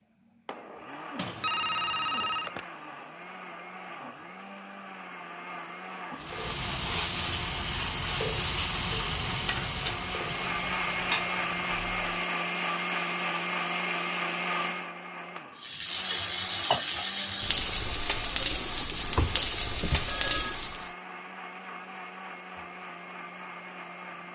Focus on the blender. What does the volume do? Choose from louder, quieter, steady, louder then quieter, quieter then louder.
louder then quieter.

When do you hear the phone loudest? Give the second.
2 s.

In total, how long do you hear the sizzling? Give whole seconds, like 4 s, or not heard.
11 s.